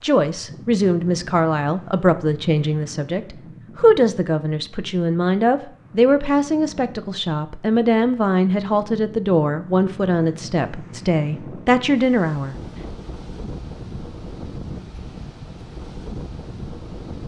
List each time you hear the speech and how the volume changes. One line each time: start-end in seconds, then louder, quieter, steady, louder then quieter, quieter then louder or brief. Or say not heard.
0.0-12.6 steady.